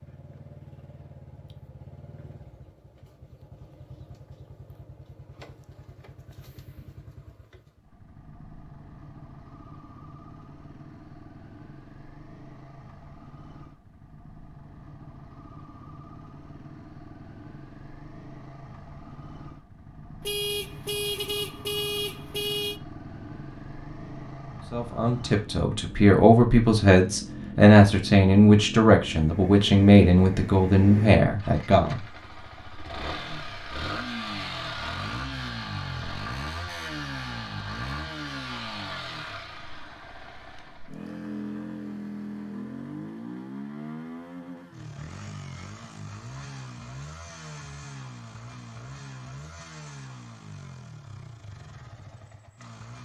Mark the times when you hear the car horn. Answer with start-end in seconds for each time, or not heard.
20.2-22.8.